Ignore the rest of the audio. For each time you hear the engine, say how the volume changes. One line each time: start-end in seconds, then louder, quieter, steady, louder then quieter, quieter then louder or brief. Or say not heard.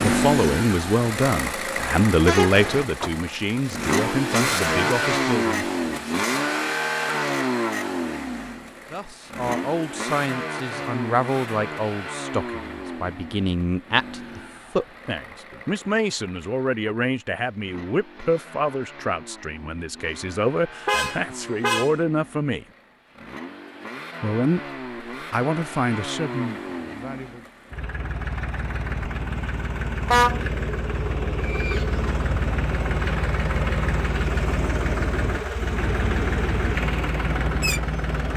0.0-38.3 quieter then louder.